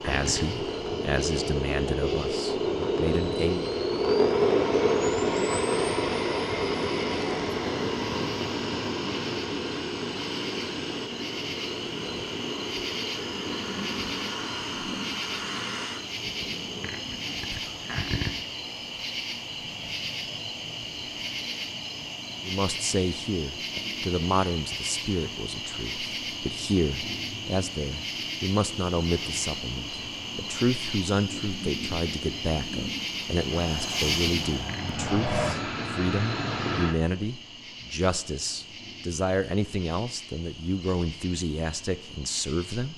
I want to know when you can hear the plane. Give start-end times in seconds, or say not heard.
0.0-16.9, 33.6-37.0.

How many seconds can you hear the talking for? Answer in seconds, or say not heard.
24 s.